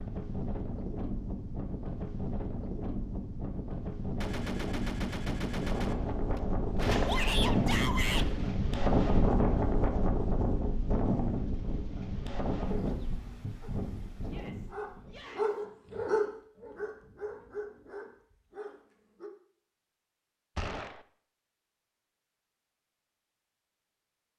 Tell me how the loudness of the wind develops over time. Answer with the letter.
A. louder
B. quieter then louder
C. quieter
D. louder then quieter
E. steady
D.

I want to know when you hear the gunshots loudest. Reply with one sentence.
The volume of the gunshots peaks at 7 seconds.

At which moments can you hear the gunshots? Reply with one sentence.
You can hear the gunshots from 4.2 to 8.6 s and from 20.6 to 21.1 s.